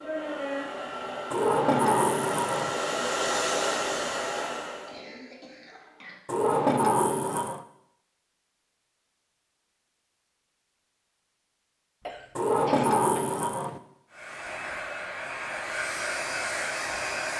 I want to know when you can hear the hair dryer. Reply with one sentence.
You can hear the hair dryer from 0.0 to 5.0 s and from 14.1 to 17.3 s.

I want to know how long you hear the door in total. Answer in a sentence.
The door can be heard for 4 seconds in total.